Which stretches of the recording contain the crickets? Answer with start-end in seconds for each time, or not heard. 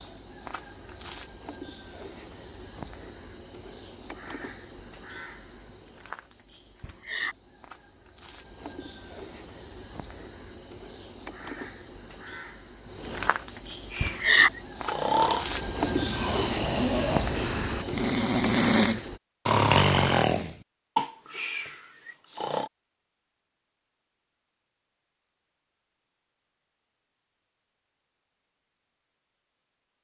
0.0-19.2.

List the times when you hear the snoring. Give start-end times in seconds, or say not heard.
13.9-22.7.